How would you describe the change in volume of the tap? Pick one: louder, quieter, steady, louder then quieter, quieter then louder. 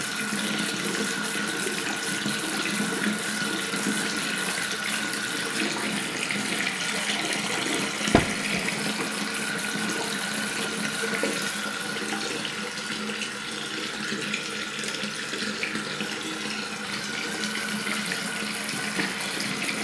steady.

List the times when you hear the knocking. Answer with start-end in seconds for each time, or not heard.
8.1-8.6.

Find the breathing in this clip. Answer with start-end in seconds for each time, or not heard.
not heard.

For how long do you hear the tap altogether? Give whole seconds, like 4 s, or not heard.
20 s.